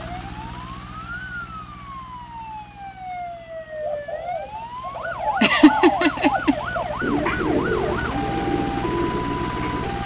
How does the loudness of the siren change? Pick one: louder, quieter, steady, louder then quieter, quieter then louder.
louder.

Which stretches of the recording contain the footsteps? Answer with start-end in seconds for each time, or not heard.
not heard.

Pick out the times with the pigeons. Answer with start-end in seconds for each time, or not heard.
3.7-10.0.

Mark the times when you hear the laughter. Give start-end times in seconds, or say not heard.
5.4-6.5.